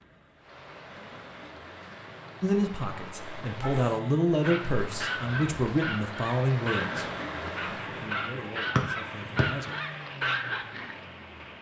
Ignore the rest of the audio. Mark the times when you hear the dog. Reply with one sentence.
You can hear the dog from 3.6 to 11.1 s.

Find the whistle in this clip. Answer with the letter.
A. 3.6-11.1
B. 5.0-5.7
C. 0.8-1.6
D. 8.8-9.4
D.